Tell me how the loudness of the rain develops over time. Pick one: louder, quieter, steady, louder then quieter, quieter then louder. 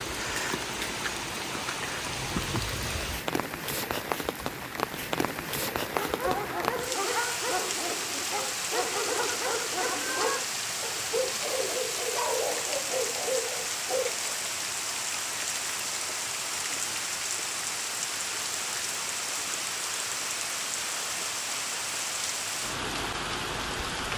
steady.